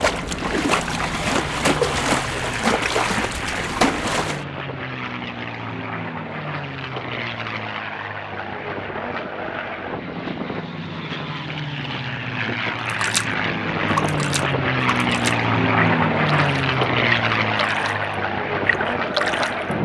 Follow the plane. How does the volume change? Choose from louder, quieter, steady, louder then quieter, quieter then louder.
louder.